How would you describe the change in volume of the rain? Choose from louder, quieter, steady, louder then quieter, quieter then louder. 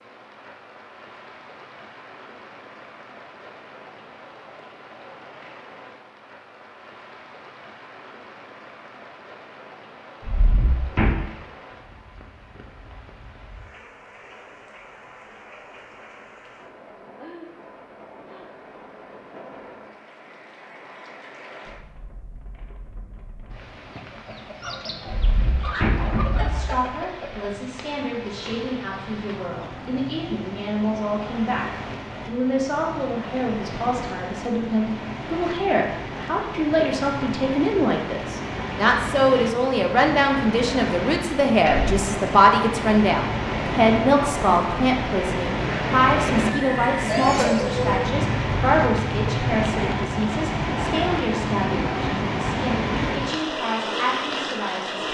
louder.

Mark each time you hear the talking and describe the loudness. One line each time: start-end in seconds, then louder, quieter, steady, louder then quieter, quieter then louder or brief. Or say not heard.
26.3-55.0 louder then quieter.